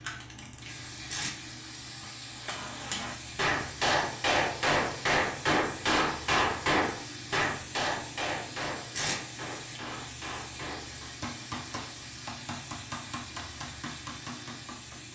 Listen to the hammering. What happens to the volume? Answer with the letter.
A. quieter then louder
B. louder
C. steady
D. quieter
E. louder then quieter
D.